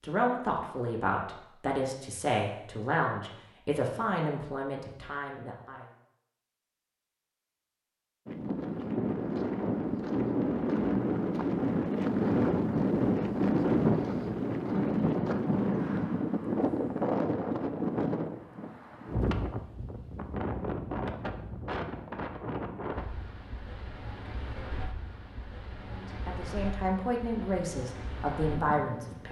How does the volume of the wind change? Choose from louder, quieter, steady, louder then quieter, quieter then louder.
quieter.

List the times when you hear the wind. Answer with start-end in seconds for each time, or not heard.
8.2-29.2.